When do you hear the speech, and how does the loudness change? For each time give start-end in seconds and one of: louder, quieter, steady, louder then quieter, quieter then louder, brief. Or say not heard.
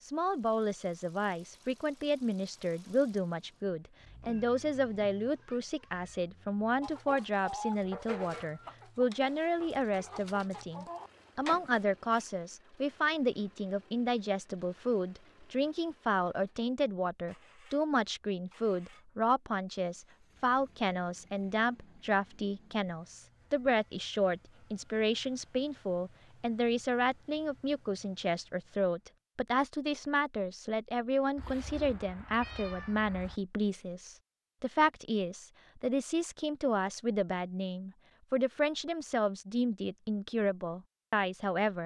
0.0-41.8 steady.